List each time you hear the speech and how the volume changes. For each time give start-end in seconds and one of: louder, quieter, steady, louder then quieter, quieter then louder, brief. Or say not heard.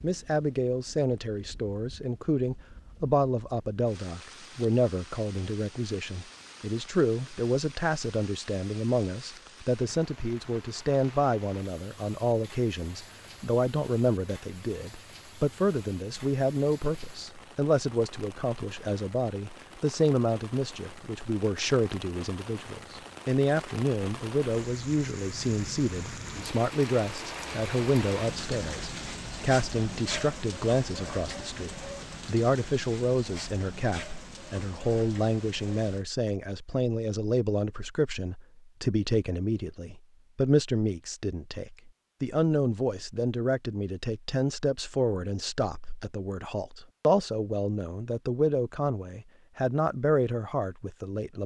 0.0-51.4 steady.